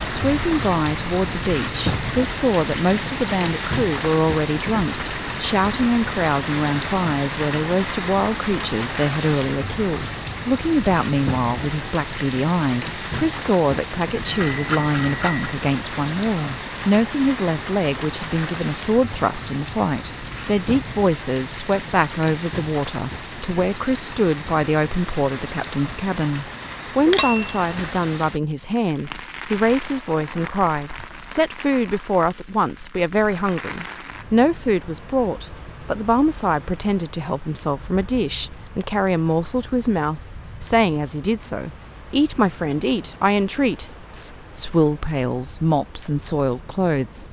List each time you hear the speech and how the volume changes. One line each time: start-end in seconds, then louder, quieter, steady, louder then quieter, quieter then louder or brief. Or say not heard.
0.0-47.2 steady.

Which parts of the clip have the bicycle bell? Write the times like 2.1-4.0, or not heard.
14.2-15.6, 27.1-27.9.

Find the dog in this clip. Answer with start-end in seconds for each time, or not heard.
not heard.